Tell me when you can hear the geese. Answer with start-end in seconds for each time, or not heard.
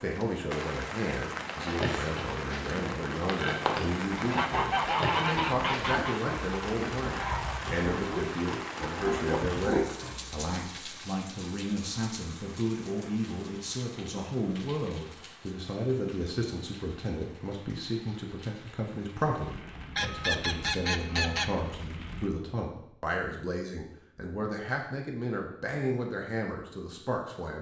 4.1-6.2, 19.9-21.5.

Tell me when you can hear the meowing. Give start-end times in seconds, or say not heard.
not heard.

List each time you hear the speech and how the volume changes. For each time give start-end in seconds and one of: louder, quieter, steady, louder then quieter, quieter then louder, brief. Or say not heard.
0.0-27.5 steady.